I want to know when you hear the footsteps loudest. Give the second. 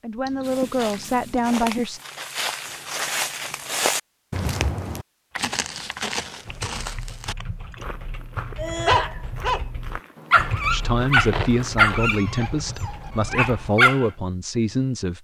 4 s.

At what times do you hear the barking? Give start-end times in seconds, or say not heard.
8.6-9.6, 10.3-14.1.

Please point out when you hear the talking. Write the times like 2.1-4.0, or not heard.
0.0-2.0, 10.7-15.1.